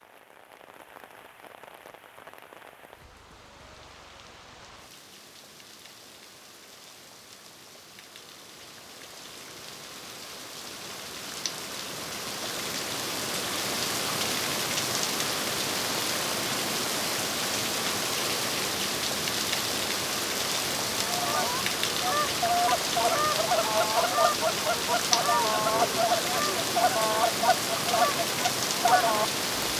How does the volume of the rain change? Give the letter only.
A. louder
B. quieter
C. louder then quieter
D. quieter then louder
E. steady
A.